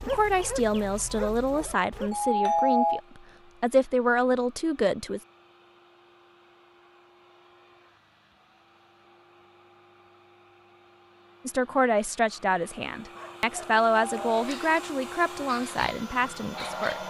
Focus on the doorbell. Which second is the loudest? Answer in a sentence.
The volume of the doorbell peaks at 3 seconds.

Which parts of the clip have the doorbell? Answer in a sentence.
You can hear the doorbell from 2.1 to 3.0 s and from 13.9 to 14.4 s.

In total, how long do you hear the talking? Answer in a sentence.
You can hear the talking for 11 seconds altogether.